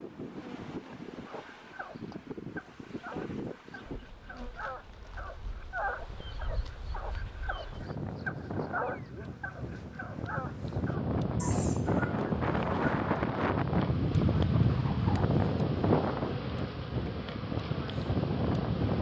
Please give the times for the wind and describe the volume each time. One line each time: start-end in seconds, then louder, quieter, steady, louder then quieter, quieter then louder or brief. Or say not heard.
0.0-18.9 quieter then louder.